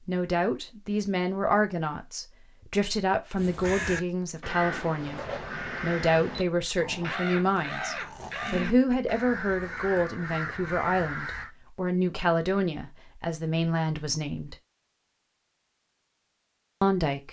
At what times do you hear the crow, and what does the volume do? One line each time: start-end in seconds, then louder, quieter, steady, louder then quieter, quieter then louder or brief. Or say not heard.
3.4-11.5 steady.